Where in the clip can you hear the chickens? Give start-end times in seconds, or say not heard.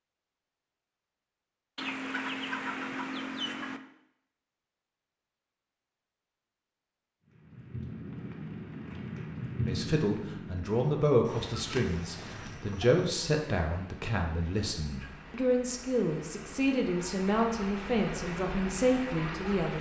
1.8-3.8, 11.2-13.1.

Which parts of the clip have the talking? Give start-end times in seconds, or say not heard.
9.7-19.7.